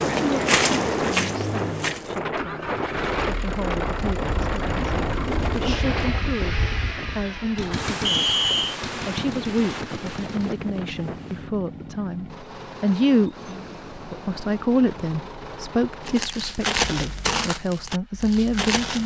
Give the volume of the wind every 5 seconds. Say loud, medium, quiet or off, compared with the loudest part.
loud, loud, medium, off.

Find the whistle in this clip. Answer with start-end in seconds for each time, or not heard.
8.1-8.8.